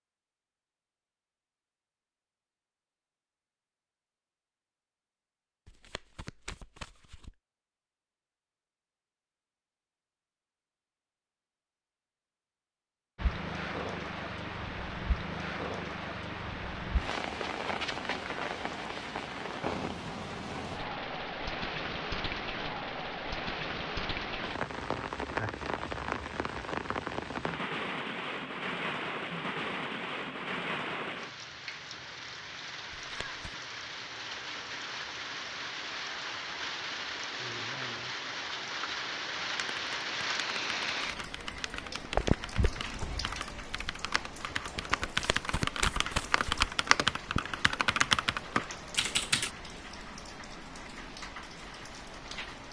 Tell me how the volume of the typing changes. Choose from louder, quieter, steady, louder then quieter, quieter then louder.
louder.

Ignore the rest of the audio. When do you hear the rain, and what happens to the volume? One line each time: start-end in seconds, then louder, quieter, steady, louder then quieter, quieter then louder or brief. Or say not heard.
13.2-52.6 quieter.